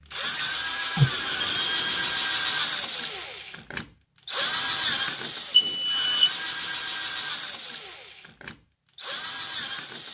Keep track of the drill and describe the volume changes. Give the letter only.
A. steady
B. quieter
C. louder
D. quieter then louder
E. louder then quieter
B.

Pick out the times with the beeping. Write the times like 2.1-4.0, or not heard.
0.9-2.1, 5.5-6.3.